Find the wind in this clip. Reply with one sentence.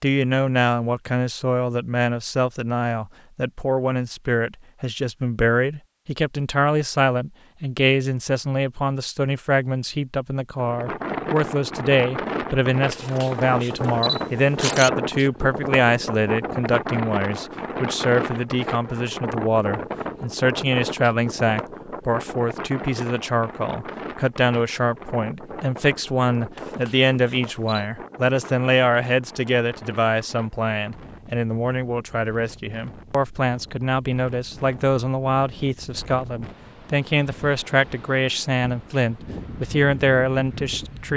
You can hear the wind from 10.6 to 41.1 s.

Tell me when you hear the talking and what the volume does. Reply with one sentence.
You can hear the talking from 0.0 to 41.1 s, at a steady volume.